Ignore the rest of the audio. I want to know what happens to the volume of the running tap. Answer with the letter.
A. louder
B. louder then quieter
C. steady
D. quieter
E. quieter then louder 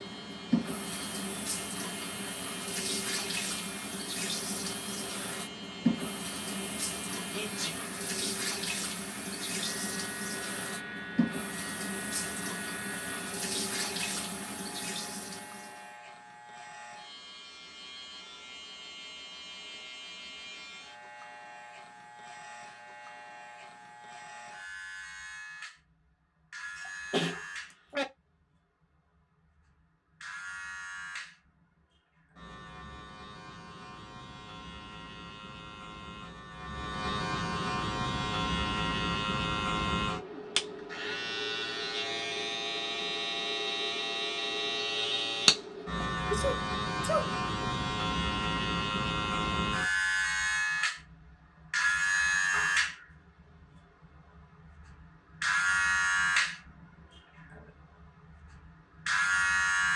C.